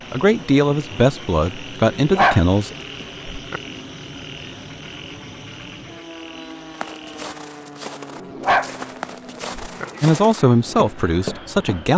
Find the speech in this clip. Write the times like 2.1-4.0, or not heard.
0.1-2.7, 10.0-11.9.